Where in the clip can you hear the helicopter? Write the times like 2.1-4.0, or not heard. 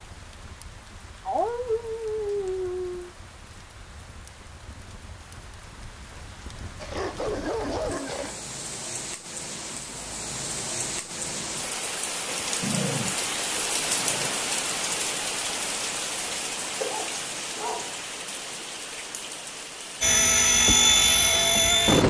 20.0-22.0.